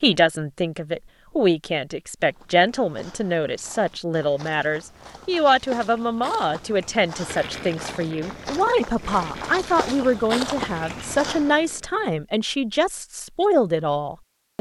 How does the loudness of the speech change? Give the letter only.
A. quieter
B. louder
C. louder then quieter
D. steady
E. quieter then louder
D.